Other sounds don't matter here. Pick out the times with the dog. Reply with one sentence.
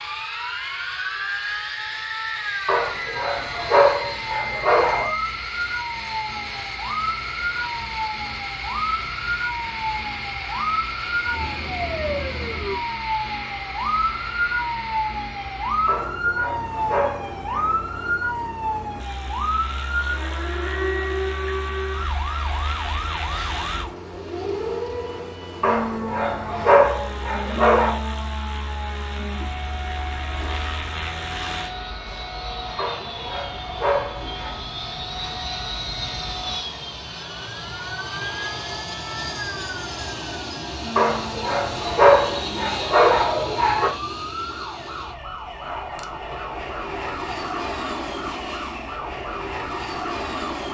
You can hear the dog from 2.6 to 5.1 s, from 15.8 to 17.8 s, from 25.6 to 28.0 s, from 32.8 to 34.5 s and from 41.0 to 43.9 s.